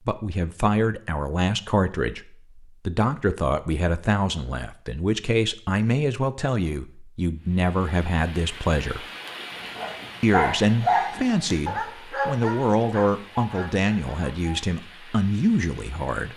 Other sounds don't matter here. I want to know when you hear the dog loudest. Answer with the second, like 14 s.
11 s.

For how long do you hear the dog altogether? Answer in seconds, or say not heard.
5 s.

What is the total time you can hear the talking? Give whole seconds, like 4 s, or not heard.
15 s.